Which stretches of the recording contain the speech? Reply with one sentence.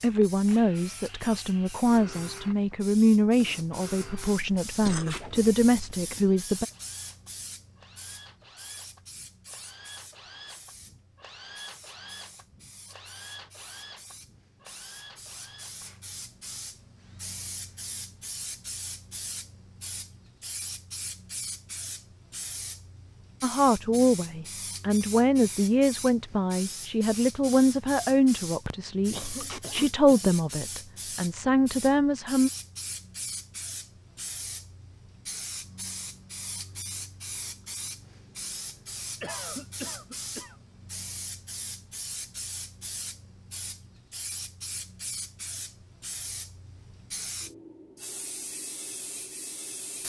You can hear the speech from 0.0 to 6.7 s and from 23.4 to 32.5 s.